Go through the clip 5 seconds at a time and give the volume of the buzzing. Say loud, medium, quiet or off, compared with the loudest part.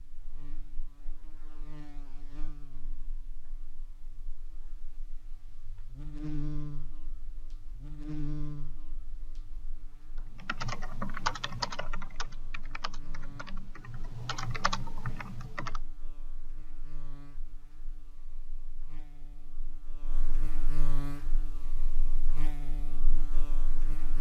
quiet, loud, quiet, quiet, loud.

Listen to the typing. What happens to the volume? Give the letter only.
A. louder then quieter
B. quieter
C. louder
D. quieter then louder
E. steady
D.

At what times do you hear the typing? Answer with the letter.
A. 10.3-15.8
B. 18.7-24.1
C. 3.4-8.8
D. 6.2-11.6
A.